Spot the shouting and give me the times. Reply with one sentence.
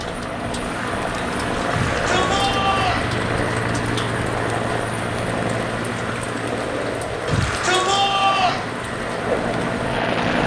The shouting can be heard from 1.7 to 3.1 s and from 7.2 to 8.7 s.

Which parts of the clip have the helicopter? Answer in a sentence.
You can hear the helicopter from 0.0 to 10.4 s.